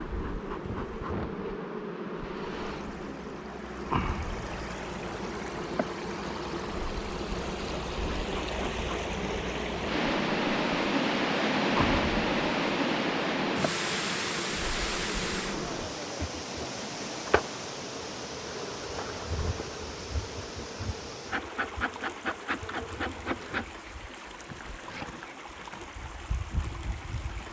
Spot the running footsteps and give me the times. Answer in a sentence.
The running footsteps can't be heard in this clip.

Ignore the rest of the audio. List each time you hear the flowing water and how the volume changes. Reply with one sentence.
The flowing water can be heard from 0.0 to 27.4 s, getting louder then quieter.